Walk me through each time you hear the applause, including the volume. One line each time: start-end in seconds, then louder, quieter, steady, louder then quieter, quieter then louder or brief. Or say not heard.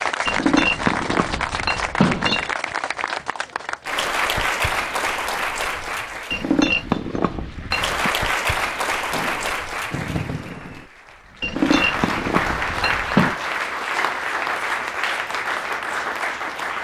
0.0-16.7 steady.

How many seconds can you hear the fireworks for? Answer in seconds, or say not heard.
2 s.